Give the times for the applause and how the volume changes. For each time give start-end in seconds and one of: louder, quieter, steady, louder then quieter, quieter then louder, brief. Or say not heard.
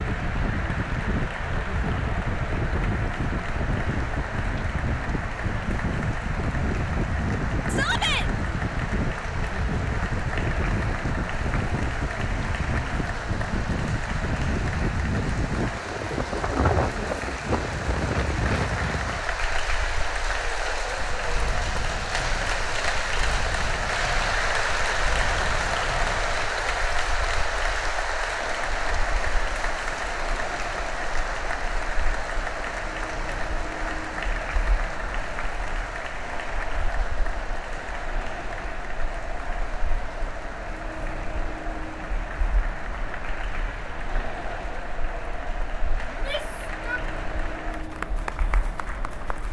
0.0-49.4 louder then quieter.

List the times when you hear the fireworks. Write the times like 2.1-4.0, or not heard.
not heard.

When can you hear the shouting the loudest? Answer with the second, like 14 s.
8 s.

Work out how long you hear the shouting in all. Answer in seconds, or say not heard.
2 s.